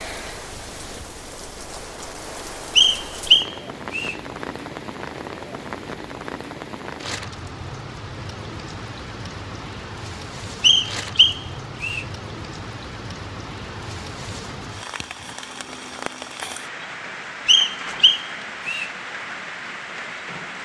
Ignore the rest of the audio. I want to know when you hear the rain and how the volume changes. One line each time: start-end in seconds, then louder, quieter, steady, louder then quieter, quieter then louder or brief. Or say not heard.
0.0-20.6 steady.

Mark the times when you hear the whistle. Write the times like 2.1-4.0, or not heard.
2.8-4.2, 10.6-12.1, 17.4-18.9.